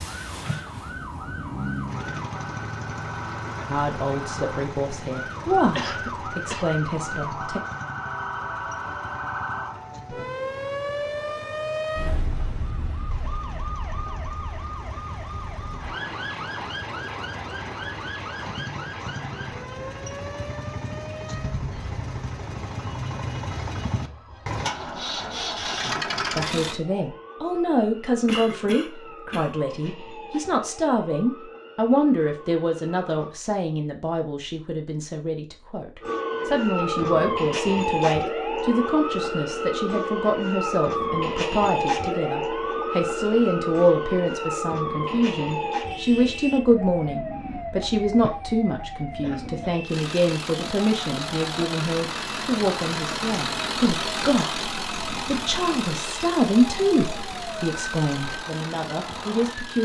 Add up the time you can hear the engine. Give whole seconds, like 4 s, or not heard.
37 s.